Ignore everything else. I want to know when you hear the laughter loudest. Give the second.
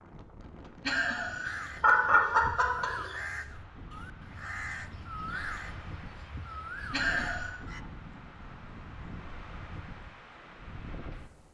2 s.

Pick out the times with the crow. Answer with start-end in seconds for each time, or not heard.
1.4-7.8.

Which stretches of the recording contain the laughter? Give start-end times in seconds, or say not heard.
0.8-3.1, 6.9-7.5.